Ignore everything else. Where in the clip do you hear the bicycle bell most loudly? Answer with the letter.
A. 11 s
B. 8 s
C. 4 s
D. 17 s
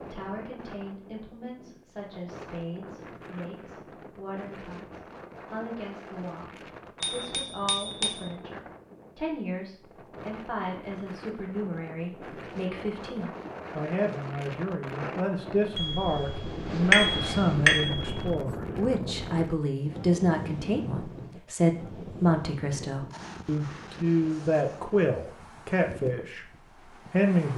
D.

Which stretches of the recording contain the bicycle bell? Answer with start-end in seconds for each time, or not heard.
7.0-8.2, 15.8-18.2.